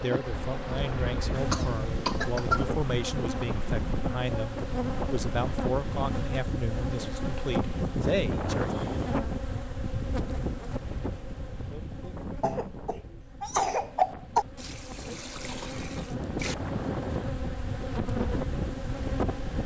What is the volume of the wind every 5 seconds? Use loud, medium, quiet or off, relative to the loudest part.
loud, loud, medium, loud.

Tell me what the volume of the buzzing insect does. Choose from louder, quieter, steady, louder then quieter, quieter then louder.
quieter then louder.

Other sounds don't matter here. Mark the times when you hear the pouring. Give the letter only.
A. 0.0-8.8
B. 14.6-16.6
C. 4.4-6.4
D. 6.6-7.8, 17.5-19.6
B.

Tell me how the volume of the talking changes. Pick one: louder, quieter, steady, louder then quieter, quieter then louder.
steady.